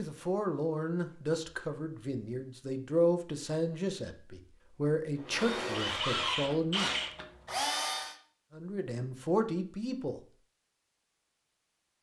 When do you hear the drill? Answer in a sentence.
You can hear the drill from 5.2 to 8.2 s.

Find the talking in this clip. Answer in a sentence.
You can hear the talking from 0.0 to 6.9 s and from 8.5 to 10.2 s.